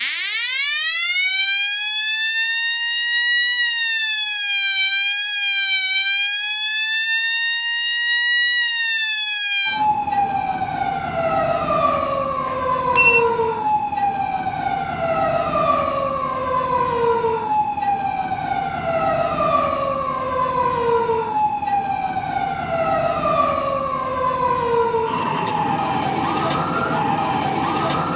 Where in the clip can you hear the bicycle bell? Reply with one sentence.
The bicycle bell can be heard from 12.4 to 13.2 s.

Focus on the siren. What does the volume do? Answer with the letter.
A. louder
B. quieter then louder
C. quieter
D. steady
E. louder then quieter
D.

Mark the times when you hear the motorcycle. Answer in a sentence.
You can't hear the motorcycle here.